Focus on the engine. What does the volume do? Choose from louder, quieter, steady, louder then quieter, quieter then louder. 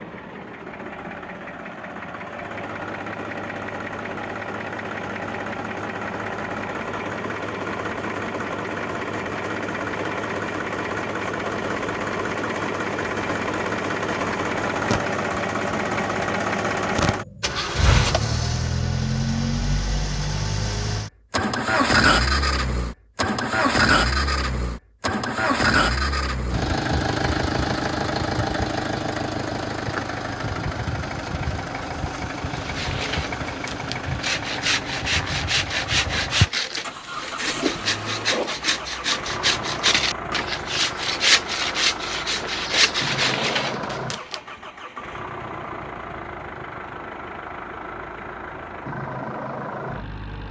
louder then quieter.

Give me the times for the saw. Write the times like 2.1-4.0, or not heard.
32.5-44.4.